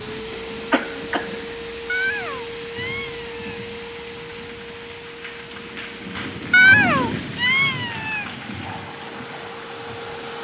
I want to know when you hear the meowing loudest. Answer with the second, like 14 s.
7 s.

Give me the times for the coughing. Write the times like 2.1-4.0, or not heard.
0.3-1.5.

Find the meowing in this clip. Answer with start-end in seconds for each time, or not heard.
1.9-3.6, 6.5-8.2.